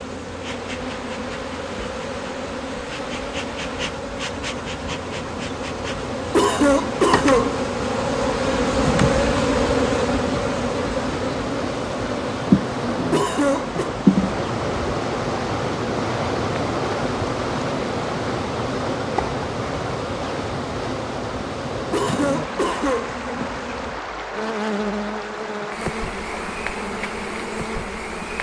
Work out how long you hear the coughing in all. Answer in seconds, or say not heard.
3 s.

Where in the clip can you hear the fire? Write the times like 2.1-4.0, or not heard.
not heard.